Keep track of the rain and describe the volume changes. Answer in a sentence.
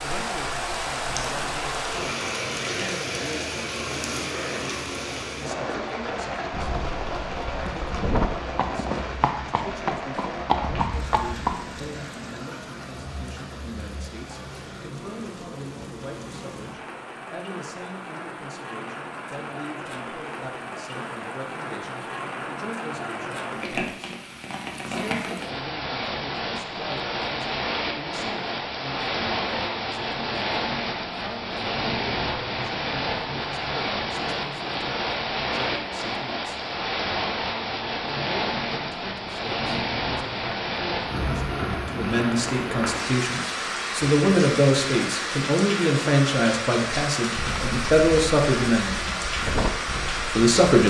The loudness of the rain goes down, then up.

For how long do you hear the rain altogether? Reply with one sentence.
The rain can be heard for 51 seconds in total.